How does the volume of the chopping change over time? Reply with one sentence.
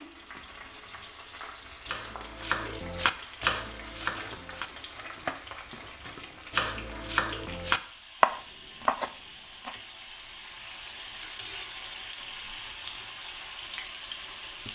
The volume of the chopping goes down, then up.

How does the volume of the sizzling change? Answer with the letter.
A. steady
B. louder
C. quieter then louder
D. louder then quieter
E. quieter
B.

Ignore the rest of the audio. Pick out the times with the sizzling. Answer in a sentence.
You can hear the sizzling from 0.0 to 14.7 s.